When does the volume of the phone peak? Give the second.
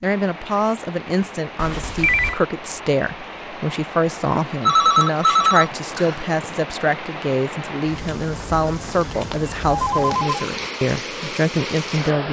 5 s.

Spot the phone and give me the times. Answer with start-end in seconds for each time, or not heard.
1.6-2.4, 4.7-6.2, 9.3-10.4.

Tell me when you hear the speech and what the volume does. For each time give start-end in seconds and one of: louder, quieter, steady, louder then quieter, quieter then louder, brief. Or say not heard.
0.0-12.2 steady.